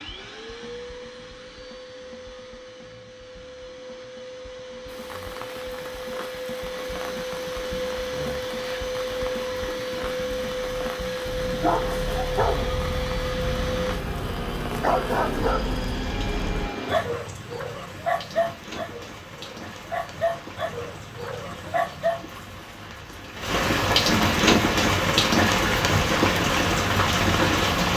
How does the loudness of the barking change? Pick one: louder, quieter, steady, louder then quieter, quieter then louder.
steady.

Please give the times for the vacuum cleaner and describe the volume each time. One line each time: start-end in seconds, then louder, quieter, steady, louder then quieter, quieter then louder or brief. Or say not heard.
0.0-16.9 louder.